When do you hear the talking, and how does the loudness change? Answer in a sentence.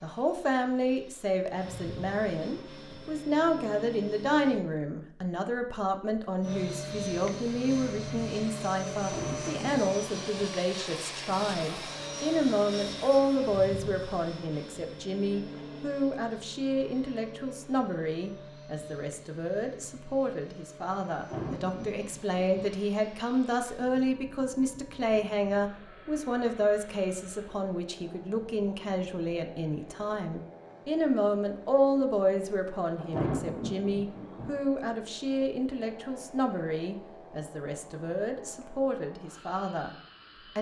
The talking can be heard from 0.0 to 40.0 s, at a steady volume.